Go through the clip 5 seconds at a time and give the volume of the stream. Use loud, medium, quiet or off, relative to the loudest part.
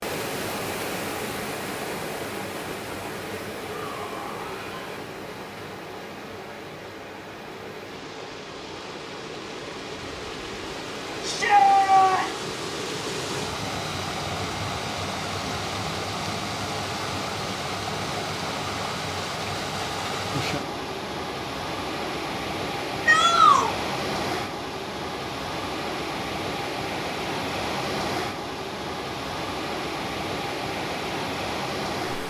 loud, medium, loud, loud, loud, loud, loud.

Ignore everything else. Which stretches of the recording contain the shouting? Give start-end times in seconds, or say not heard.
3.6-5.0, 11.2-12.4, 23.1-23.7.